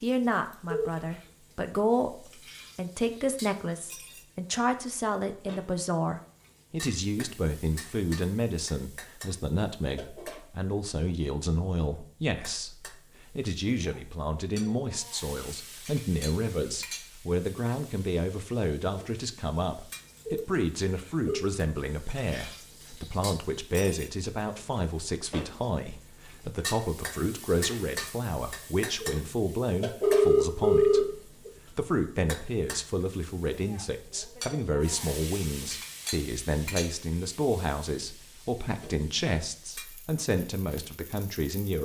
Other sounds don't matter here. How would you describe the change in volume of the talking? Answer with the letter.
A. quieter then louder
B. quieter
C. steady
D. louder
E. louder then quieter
C.